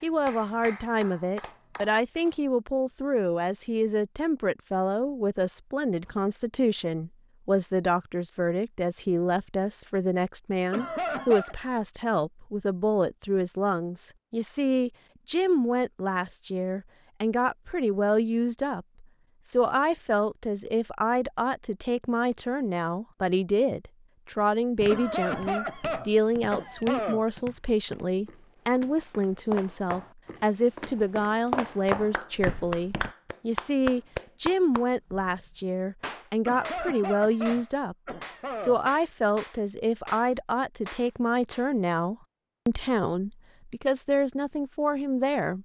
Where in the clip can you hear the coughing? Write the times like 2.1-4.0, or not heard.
10.7-11.6, 24.9-27.2, 36.5-38.8.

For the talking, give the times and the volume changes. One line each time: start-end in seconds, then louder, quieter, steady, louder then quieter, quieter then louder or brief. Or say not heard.
0.0-45.6 steady.